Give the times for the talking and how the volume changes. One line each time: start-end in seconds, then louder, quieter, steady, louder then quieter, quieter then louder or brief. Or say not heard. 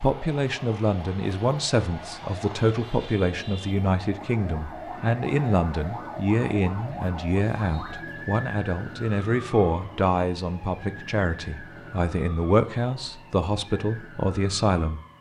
0.0-15.0 steady.